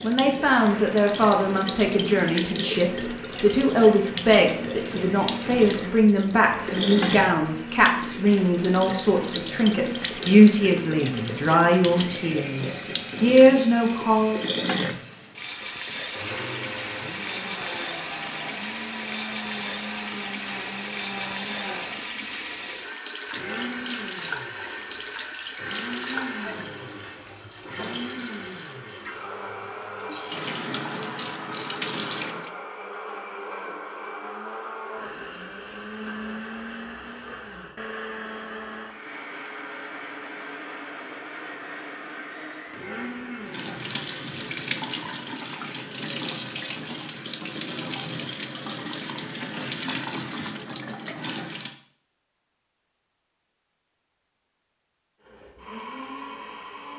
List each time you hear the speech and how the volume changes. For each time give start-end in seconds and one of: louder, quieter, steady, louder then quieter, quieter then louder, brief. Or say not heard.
0.0-14.4 steady.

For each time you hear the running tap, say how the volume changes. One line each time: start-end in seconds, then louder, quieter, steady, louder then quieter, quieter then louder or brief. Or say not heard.
0.0-32.5 steady
43.5-51.8 steady.